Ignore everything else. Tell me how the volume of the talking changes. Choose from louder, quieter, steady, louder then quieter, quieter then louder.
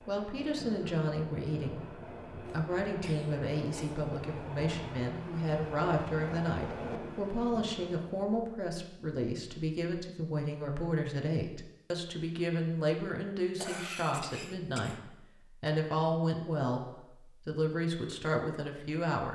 steady.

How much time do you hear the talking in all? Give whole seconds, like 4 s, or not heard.
19 s.